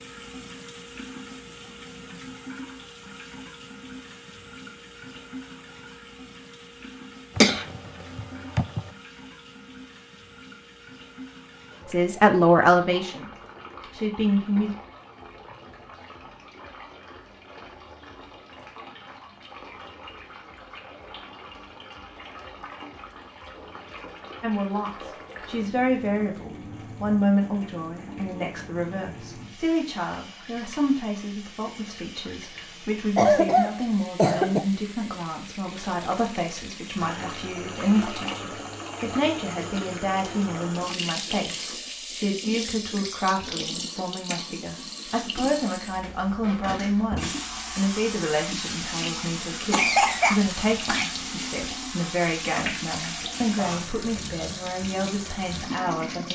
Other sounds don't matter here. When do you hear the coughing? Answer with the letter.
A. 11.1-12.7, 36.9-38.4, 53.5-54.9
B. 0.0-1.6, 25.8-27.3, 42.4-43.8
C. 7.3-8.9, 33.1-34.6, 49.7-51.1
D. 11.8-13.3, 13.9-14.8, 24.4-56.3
C.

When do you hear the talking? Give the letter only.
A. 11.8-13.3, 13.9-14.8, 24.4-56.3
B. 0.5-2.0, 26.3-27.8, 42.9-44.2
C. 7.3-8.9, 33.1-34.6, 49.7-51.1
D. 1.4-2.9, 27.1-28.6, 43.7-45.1
A.